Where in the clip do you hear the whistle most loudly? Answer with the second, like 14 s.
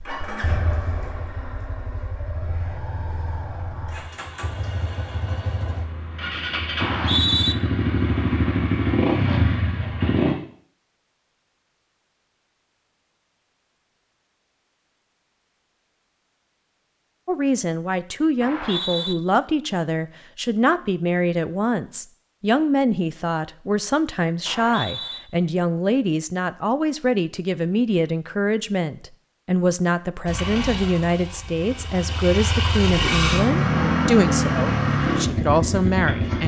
7 s.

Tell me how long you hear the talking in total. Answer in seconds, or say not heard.
19 s.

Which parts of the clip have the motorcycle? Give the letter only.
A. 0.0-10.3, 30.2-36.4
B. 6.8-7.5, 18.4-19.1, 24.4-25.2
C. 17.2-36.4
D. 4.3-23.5
A.